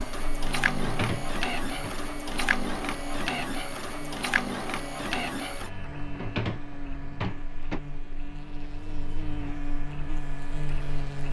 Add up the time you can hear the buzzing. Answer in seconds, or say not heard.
11 s.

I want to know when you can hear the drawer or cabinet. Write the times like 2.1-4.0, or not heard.
0.8-1.9, 6.2-7.8.